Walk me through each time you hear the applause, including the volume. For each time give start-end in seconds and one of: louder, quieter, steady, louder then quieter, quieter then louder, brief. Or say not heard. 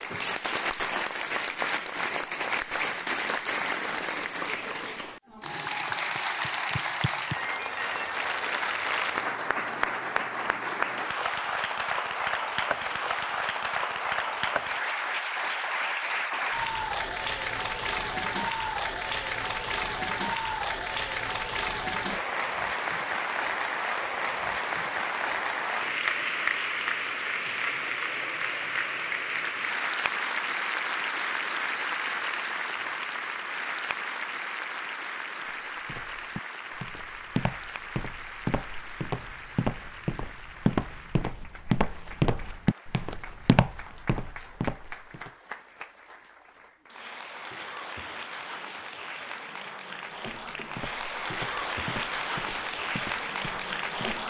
0.0-54.2 quieter.